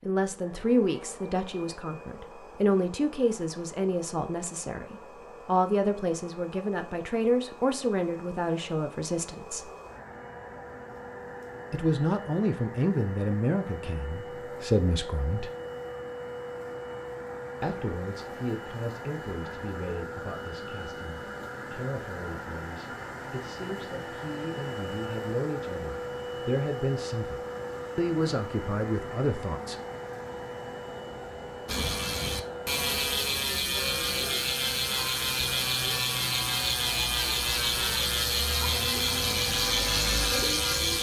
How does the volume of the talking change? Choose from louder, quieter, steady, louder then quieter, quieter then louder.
quieter then louder.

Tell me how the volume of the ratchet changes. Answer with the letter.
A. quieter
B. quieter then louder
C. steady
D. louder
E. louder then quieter
C.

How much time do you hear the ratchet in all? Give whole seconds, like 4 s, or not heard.
9 s.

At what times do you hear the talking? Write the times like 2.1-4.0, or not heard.
0.0-9.7, 11.7-15.5, 17.6-29.8.